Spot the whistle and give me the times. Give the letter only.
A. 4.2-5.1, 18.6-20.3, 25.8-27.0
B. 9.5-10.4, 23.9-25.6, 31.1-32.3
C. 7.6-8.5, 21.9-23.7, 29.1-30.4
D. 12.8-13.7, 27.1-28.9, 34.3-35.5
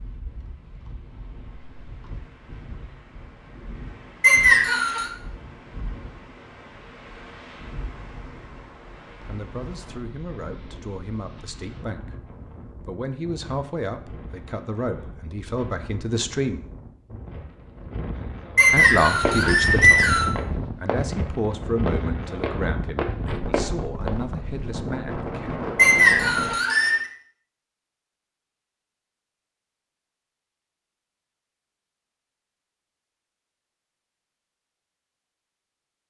A.